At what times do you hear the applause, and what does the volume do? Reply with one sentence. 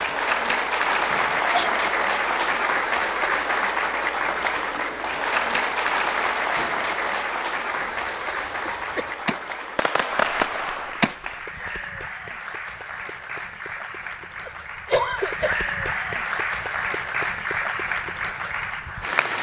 You can hear the applause from 0.0 to 19.3 s, getting quieter then louder.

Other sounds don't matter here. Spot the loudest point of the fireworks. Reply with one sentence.
The loudest moment of the fireworks is at 10 seconds.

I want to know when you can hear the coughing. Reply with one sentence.
The coughing can be heard from 1.1 to 1.7 s, from 8.7 to 9.3 s and from 14.4 to 15.7 s.